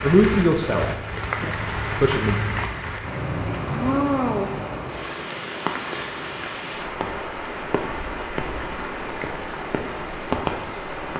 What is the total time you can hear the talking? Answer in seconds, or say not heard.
2 s.